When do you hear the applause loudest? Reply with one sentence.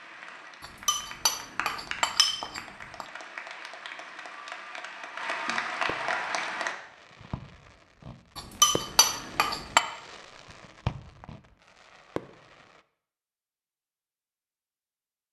The volume of the applause peaks at 6 seconds.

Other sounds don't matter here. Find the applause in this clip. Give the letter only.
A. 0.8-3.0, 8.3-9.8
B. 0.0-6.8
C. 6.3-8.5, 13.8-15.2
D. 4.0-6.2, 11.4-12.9
B.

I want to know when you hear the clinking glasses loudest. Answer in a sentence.
The loudest moment of the clinking glasses is at 9 seconds.